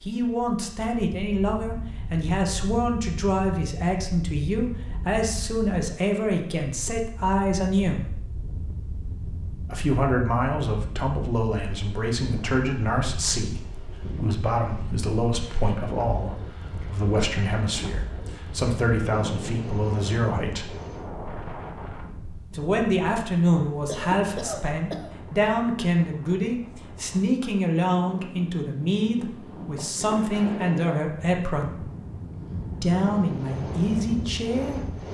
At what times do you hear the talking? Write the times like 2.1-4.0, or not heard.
0.0-8.1, 9.7-20.8, 22.5-31.9, 32.8-34.8.